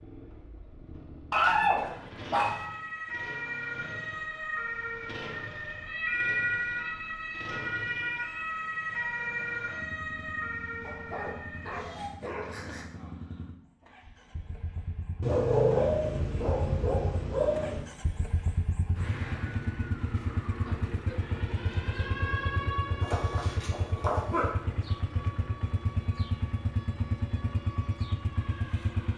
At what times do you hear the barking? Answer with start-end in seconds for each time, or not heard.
1.3-2.6, 10.8-12.8, 15.2-17.9, 23.0-24.5.